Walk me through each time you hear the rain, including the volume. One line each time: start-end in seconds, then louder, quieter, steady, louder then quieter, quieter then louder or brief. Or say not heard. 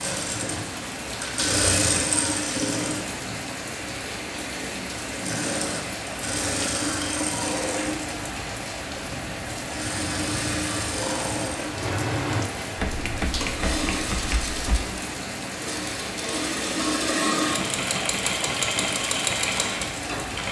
0.0-20.4 steady.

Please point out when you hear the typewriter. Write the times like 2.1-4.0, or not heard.
12.8-14.8.